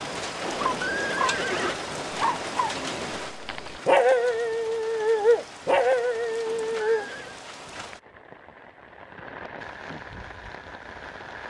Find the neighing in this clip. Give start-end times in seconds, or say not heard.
0.5-1.8, 6.5-7.4.